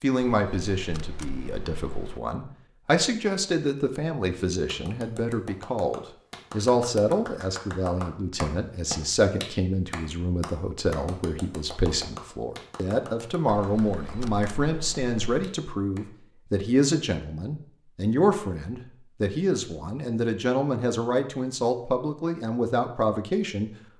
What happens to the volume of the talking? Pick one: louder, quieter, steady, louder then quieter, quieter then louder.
steady.